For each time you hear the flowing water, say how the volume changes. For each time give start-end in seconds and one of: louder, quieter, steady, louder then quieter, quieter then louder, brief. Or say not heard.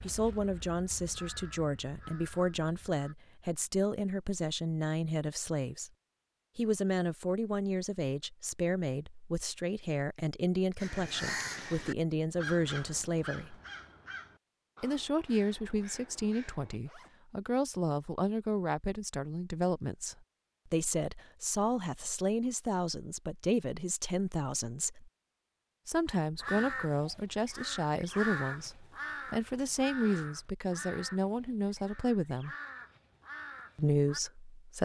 not heard.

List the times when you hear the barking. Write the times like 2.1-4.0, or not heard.
not heard.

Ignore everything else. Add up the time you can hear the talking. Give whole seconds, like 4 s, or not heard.
31 s.